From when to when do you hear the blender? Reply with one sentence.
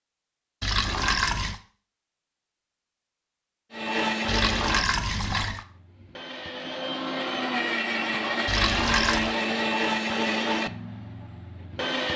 You can hear the blender from 3.7 to 12.1 s.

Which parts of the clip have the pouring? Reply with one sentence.
You can hear the pouring from 0.6 to 1.6 s, from 4.2 to 5.7 s and from 8.4 to 9.3 s.